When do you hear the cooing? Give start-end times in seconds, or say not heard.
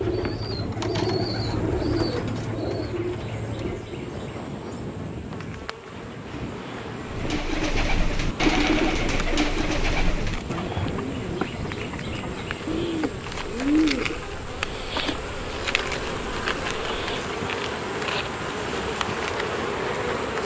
0.0-4.0, 7.0-14.2.